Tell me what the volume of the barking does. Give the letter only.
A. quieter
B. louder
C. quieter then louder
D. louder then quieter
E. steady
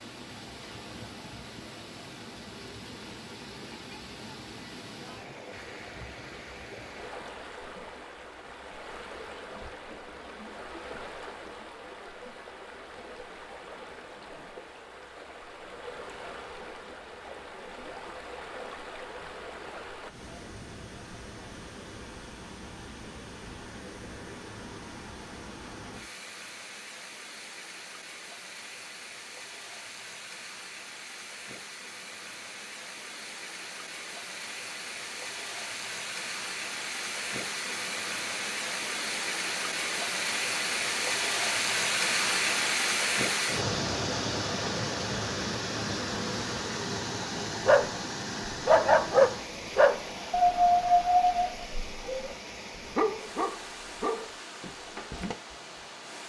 A.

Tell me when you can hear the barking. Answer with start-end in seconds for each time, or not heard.
47.6-55.4.